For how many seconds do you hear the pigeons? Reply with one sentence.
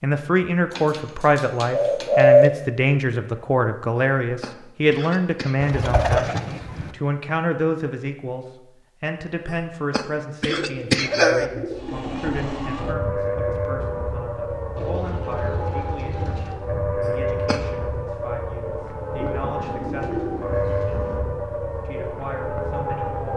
The pigeons can be heard for 9 seconds in total.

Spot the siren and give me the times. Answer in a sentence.
The siren can be heard from 11.8 to 23.3 s.